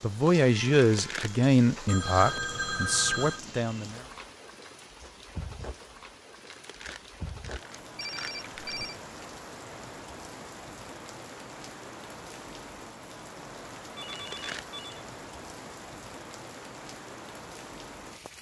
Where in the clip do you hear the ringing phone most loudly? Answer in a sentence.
The loudest moment of the ringing phone is at 3 seconds.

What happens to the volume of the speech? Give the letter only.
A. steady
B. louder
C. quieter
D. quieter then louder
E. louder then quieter
D.